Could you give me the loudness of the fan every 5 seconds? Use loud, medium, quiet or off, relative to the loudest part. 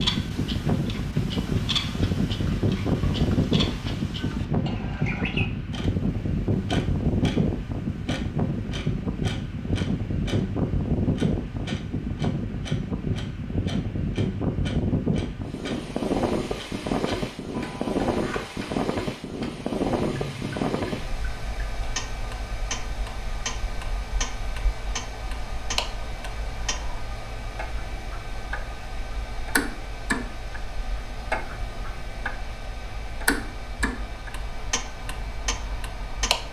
loud, loud, loud, loud, medium, quiet, quiet, quiet.